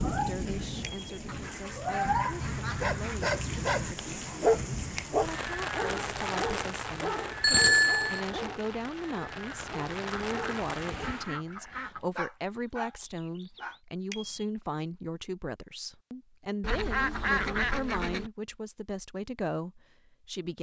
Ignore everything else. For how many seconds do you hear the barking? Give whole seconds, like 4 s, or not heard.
12 s.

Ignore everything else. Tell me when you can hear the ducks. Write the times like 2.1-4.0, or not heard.
1.2-3.2, 10.1-12.1, 16.6-18.3.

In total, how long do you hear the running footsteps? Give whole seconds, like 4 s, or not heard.
not heard.